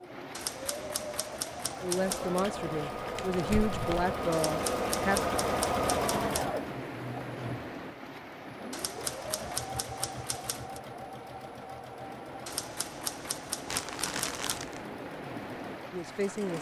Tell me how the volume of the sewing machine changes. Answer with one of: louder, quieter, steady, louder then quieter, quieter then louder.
louder then quieter.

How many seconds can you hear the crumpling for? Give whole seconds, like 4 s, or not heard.
3 s.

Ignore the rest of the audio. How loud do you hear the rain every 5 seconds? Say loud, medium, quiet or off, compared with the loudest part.
loud, loud, medium, loud.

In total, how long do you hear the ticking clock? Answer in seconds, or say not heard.
not heard.